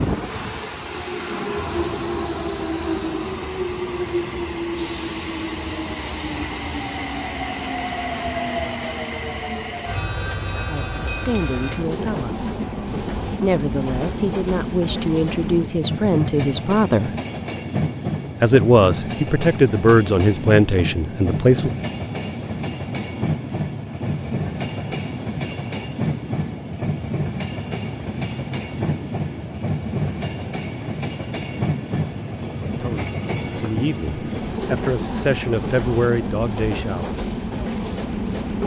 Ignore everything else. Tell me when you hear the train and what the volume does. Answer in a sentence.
The train can be heard from 0.0 to 38.6 s, at a steady volume.